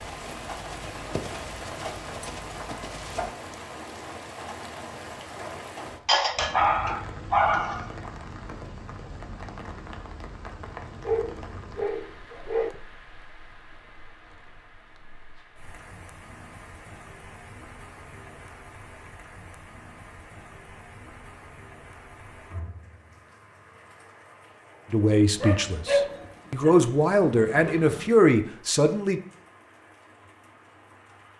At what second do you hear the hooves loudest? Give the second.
1 s.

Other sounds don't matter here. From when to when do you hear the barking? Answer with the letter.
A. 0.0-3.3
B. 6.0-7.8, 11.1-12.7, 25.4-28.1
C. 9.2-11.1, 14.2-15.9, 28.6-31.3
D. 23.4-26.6
B.